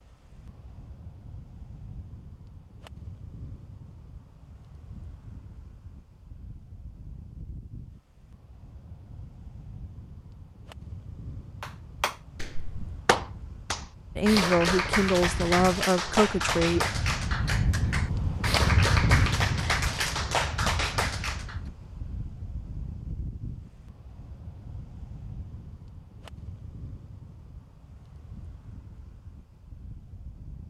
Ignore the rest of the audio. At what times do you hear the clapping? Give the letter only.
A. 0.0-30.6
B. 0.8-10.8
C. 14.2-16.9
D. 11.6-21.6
D.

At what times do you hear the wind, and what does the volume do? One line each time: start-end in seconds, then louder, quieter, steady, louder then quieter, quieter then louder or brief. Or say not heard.
0.0-30.6 louder then quieter.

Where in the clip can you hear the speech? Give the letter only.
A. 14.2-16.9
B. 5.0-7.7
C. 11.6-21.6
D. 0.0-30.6
A.